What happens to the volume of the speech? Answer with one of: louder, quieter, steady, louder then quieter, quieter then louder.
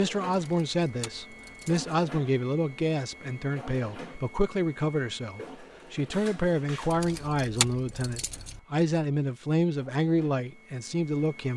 steady.